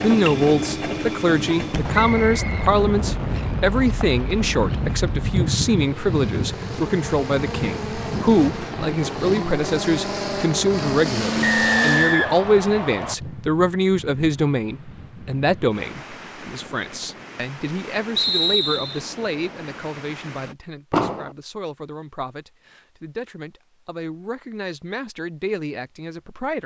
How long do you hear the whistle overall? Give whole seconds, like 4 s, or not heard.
3 s.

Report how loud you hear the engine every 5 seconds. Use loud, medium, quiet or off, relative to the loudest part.
loud, medium, loud, off, off, off.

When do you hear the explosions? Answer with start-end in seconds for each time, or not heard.
1.7-5.5, 20.9-21.3.